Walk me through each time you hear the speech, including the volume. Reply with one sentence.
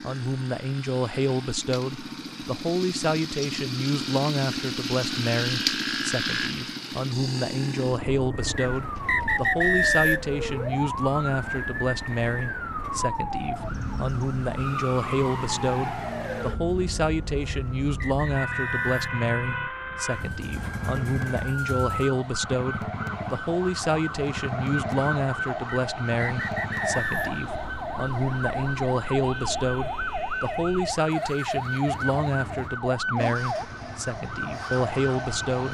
You can hear the speech from 0.0 to 35.6 s, at a steady volume.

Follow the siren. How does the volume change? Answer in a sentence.
The volume of the siren stays about the same.